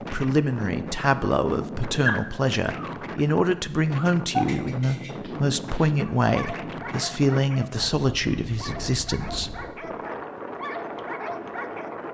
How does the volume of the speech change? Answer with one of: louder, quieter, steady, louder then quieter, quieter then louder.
steady.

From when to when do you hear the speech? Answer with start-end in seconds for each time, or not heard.
0.1-9.6.